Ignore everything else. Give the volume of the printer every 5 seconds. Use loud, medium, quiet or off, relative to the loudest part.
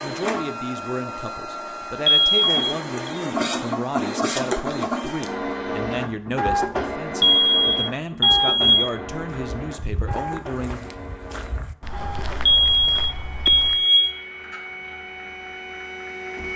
loud, loud, medium, medium.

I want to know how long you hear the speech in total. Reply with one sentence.
The speech can be heard for 11 seconds in total.